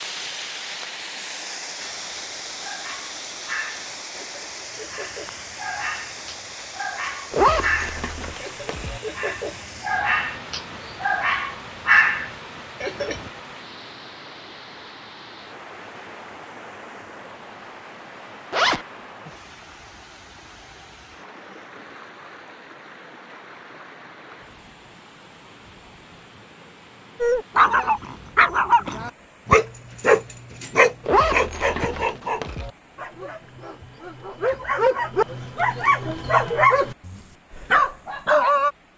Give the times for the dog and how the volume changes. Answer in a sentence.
You can hear the dog from 1.8 to 13.3 s, getting louder; and from 27.2 to 38.7 s, getting quieter then louder.